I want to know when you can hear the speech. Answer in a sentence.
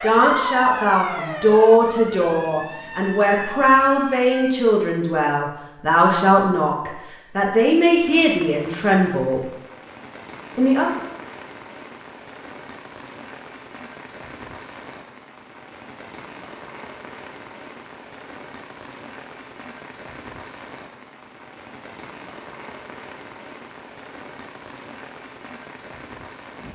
The speech can be heard from 0.0 to 9.4 s and from 10.6 to 11.0 s.